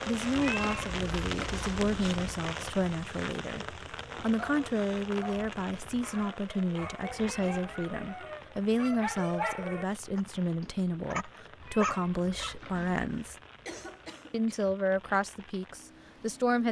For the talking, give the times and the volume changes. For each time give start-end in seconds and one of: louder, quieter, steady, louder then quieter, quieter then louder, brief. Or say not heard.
0.1-13.3 steady
14.3-16.6 brief.